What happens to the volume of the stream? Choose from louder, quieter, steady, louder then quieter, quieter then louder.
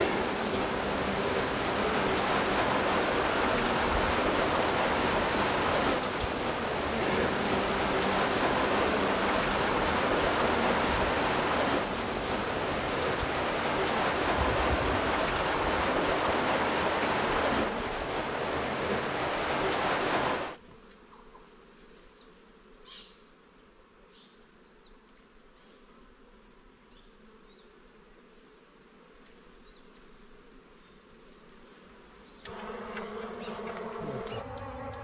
steady.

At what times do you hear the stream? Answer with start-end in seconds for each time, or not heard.
0.0-20.6.